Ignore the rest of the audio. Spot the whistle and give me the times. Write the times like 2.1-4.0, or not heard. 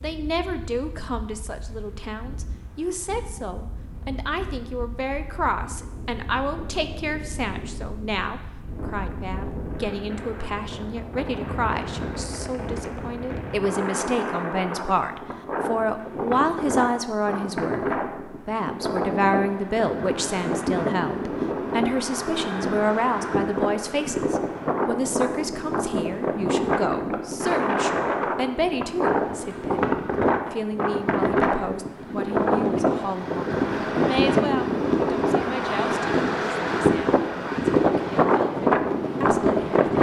not heard.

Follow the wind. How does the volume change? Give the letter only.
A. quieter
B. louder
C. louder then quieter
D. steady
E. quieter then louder
B.